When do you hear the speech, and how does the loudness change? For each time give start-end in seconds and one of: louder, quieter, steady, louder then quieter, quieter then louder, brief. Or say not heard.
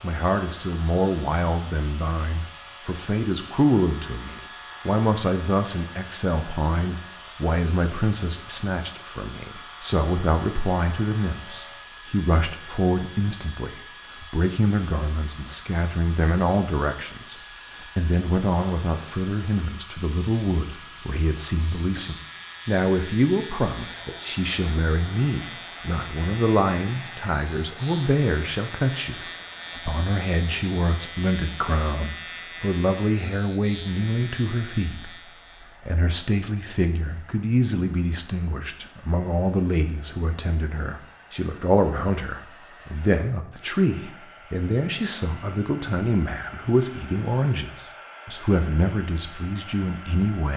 0.0-50.5 steady.